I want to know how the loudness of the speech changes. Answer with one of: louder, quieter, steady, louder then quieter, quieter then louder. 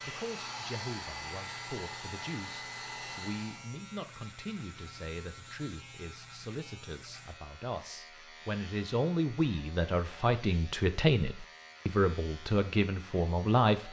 louder.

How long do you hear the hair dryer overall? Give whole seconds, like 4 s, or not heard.
4 s.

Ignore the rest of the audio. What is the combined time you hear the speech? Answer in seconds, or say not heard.
14 s.